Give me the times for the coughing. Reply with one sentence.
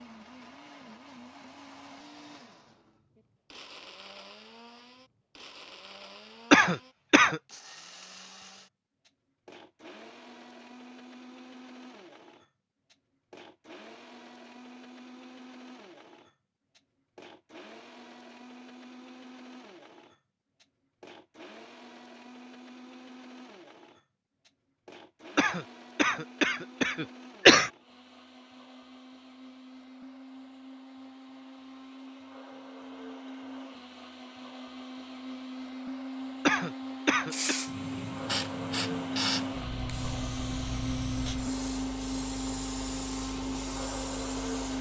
You can hear the coughing from 6.5 to 7.4 s, from 25.4 to 27.7 s and from 36.5 to 37.5 s.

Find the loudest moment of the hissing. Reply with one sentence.
The volume of the hissing peaks at 39 seconds.